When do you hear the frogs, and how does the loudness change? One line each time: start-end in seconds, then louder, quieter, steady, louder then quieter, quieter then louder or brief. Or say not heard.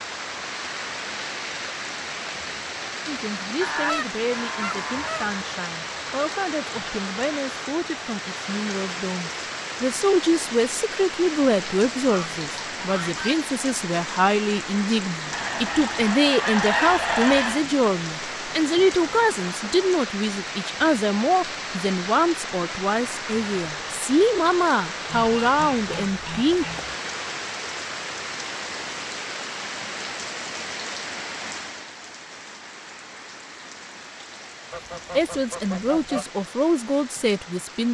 not heard.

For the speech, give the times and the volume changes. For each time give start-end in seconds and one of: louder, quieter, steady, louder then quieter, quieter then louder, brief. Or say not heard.
3.0-26.6 louder
35.1-37.8 brief.